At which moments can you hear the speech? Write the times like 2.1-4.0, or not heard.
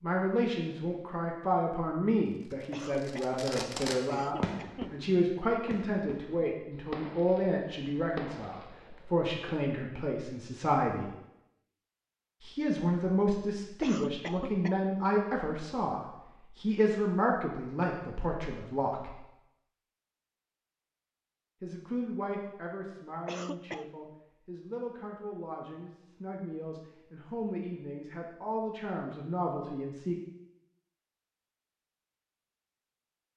0.0-11.1, 12.4-19.1, 21.6-30.1.